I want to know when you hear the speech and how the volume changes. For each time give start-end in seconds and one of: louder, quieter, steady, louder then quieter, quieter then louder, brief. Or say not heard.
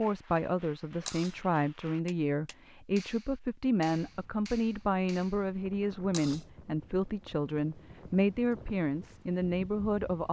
0.0-10.2 steady.